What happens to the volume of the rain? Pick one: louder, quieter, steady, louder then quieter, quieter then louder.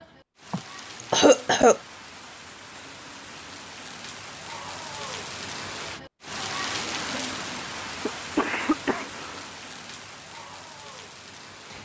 louder then quieter.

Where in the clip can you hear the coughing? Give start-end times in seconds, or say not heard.
0.5-1.8, 8.1-9.4.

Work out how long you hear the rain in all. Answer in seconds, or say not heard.
12 s.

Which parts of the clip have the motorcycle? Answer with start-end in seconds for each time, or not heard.
not heard.